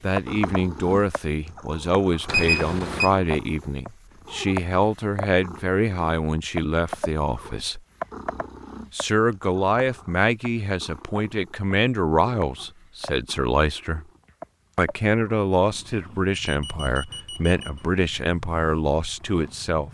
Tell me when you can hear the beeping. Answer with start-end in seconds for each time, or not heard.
2.2-3.1, 16.6-17.9.